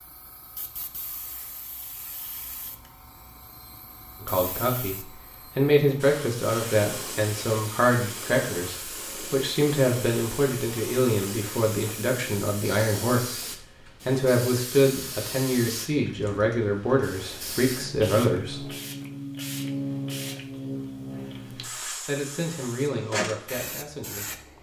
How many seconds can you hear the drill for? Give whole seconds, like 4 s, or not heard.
not heard.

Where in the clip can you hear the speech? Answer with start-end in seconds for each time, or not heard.
4.2-13.4, 14.1-18.6, 21.9-24.4.